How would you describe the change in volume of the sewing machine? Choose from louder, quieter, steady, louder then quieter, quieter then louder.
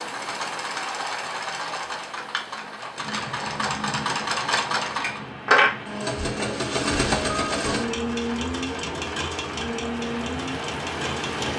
louder then quieter.